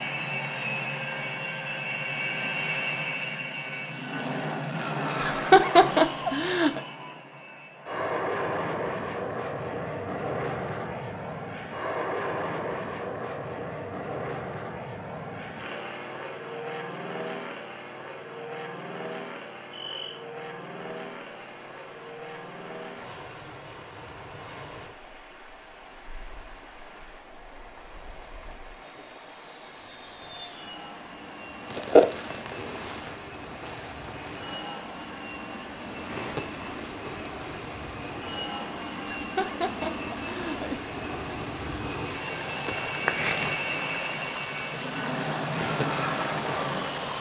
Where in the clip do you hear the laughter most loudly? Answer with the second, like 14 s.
6 s.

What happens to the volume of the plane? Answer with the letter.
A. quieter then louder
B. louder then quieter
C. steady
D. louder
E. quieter
A.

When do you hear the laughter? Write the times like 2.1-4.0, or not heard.
5.2-6.8, 39.1-40.8.